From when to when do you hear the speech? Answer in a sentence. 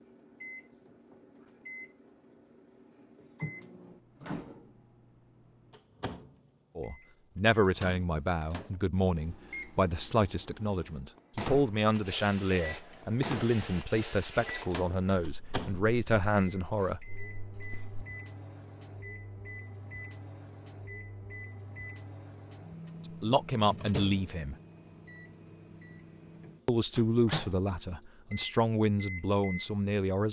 The speech can be heard from 6.8 to 17.0 s, from 23.2 to 24.6 s and from 26.6 to 30.2 s.